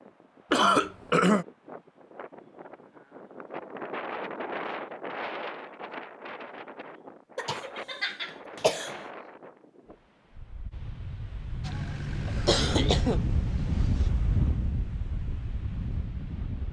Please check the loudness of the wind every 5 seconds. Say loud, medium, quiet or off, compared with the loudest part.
medium, medium, loud, medium.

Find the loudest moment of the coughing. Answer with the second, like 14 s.
1 s.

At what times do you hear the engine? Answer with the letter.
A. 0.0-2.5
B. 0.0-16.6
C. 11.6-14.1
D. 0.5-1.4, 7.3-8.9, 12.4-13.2
C.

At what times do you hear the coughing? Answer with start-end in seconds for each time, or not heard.
0.5-1.4, 7.3-8.9, 12.4-13.2.